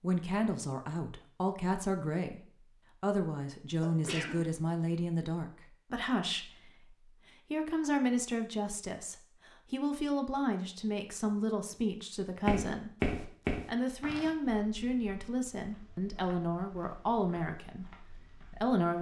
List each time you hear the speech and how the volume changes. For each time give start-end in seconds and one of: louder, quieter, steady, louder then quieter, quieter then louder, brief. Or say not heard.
0.0-18.9 steady.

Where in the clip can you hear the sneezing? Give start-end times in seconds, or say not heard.
3.8-4.4.